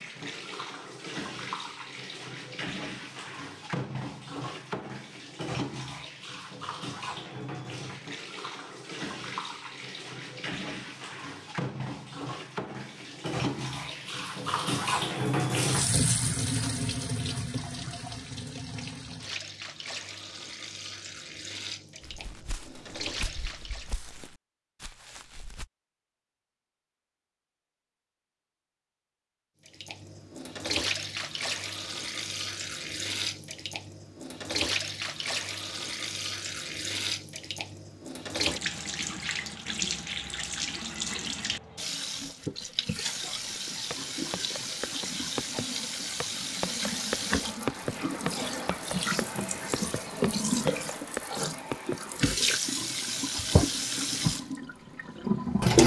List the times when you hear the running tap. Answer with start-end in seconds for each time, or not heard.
0.0-24.0, 29.6-55.8.